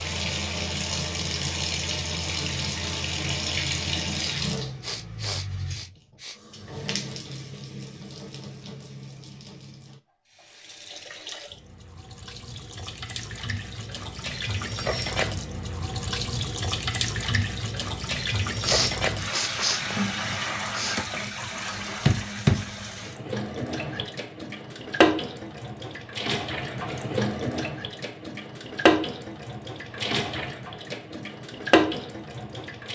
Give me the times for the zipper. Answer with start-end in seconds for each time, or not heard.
not heard.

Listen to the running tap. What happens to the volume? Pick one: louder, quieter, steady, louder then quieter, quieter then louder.
quieter then louder.